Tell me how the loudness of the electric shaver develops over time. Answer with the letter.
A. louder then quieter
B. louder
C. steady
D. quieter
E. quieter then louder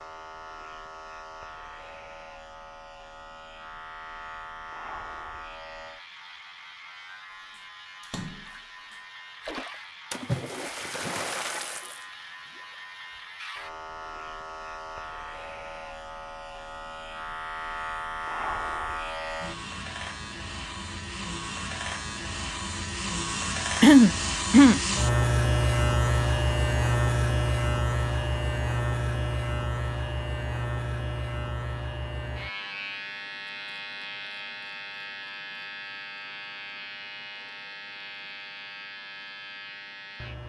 A.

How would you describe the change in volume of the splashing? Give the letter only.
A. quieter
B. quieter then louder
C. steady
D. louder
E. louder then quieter
E.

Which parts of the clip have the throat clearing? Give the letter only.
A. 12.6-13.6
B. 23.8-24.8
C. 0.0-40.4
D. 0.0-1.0
B.